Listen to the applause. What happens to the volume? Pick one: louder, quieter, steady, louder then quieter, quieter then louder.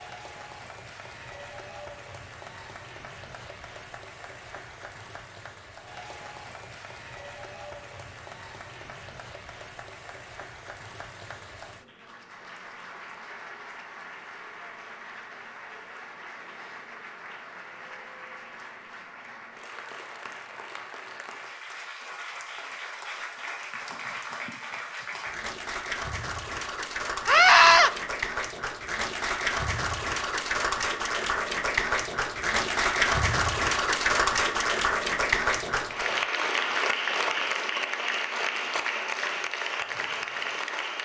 louder.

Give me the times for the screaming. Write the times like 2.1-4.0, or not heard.
27.2-27.9.